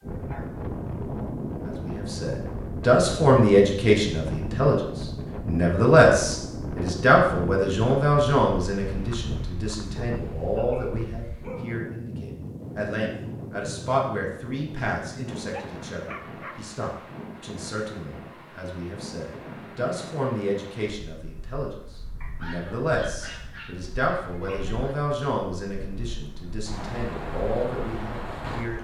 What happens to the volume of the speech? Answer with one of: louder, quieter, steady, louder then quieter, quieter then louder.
quieter.